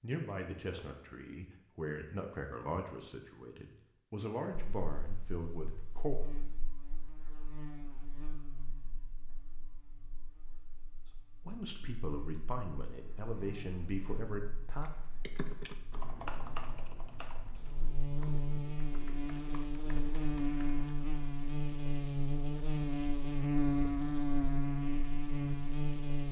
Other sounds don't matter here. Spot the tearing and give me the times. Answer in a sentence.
The tearing can't be heard in this clip.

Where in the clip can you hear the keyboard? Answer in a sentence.
You can hear the keyboard from 14.8 to 20.9 s.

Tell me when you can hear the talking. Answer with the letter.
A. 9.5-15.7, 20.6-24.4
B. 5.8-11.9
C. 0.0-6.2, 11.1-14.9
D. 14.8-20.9
C.